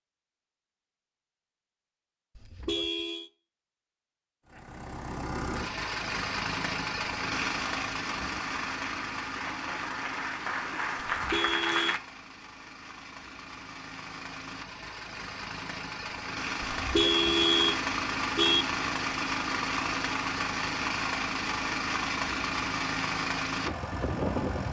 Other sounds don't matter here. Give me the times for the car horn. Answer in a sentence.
The car horn can be heard from 2.4 to 3.3 s, from 11.1 to 11.9 s and from 16.8 to 18.6 s.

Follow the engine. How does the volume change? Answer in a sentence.
The volume of the engine goes down, then up.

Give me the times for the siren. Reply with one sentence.
The siren can't be heard in this clip.